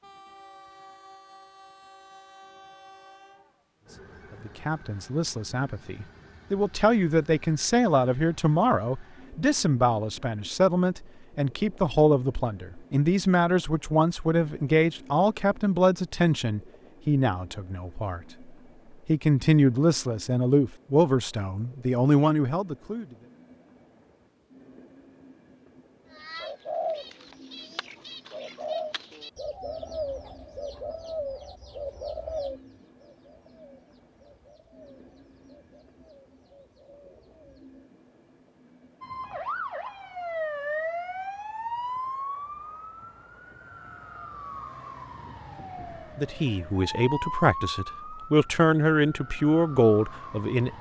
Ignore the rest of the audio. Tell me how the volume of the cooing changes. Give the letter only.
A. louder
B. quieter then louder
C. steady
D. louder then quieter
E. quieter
E.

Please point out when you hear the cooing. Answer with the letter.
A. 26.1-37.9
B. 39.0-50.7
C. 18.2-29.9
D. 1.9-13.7
A.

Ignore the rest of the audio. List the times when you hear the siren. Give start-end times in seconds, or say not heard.
39.0-50.7.